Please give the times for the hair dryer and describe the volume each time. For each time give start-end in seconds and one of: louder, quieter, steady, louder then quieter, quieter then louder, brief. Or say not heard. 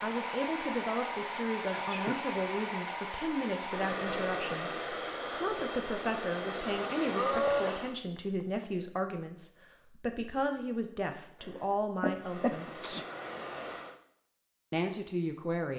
0.0-8.0 steady
12.1-14.0 brief.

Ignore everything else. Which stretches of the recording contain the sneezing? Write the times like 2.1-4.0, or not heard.
1.8-2.2, 7.1-8.7, 12.0-13.1.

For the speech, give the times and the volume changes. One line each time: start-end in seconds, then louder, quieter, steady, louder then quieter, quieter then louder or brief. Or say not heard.
0.0-12.9 steady
14.7-15.7 brief.